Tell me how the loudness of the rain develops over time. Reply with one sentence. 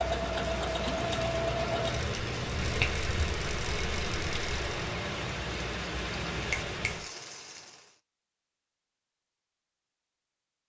The volume of the rain stays about the same.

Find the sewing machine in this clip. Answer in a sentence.
You can hear the sewing machine from 0.0 to 4.8 s.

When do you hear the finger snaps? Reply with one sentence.
You can hear the finger snaps from 1.0 to 3.0 s and from 6.5 to 7.0 s.